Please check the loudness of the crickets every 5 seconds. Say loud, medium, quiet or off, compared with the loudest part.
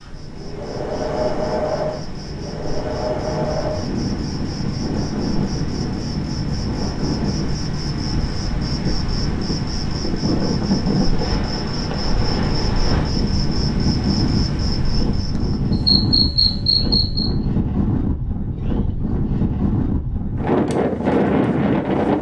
medium, medium, medium, loud, off.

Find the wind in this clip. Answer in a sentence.
You can hear the wind from 0.0 to 22.1 s.